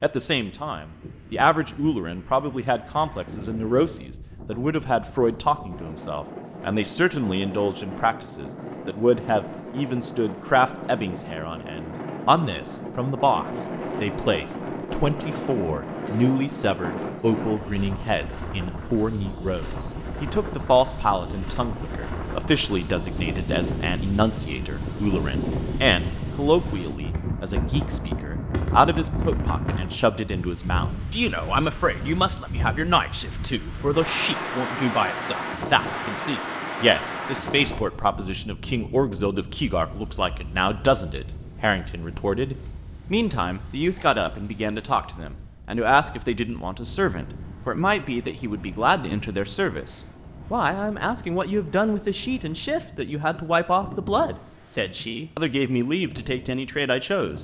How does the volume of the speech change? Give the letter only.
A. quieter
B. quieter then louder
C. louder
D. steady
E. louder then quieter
D.